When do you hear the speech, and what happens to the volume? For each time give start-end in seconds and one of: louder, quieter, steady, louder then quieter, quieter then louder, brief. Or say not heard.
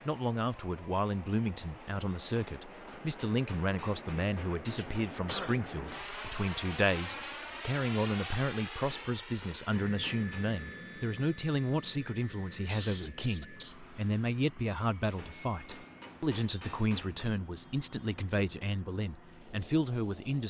0.1-20.4 steady.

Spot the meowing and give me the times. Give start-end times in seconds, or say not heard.
not heard.